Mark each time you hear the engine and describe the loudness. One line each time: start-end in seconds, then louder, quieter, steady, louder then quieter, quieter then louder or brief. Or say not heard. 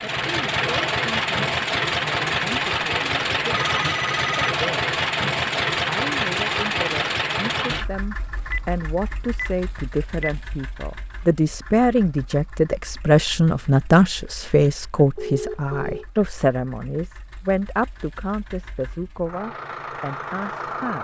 0.0-21.0 quieter then louder.